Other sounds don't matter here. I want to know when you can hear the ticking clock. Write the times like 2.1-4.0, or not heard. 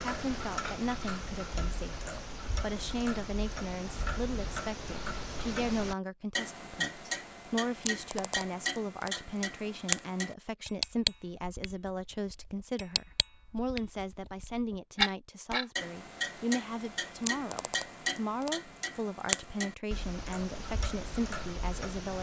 0.0-22.1.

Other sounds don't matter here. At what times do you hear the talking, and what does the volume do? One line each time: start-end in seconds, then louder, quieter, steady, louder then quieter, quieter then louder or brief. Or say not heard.
0.0-22.1 steady.